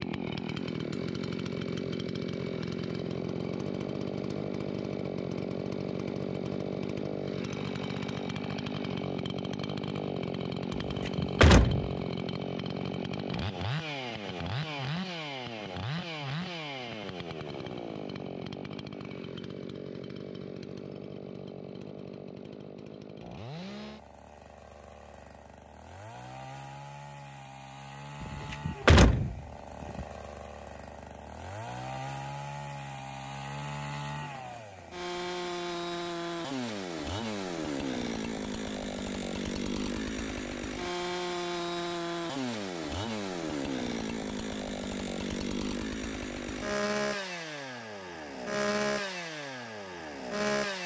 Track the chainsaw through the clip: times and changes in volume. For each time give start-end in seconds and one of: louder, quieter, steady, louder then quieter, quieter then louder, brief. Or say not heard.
0.0-50.8 quieter then louder.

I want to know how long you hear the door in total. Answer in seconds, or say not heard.
3 s.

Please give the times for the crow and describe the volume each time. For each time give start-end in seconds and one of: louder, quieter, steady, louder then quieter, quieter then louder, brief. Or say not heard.
not heard.